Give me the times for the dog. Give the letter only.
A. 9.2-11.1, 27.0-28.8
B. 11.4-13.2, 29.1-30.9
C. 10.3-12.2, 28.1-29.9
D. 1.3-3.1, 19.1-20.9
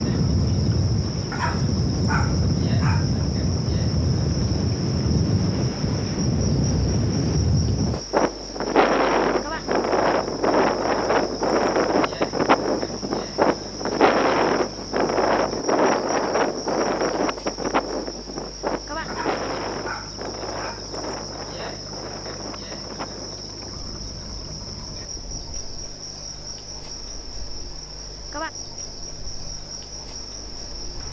D.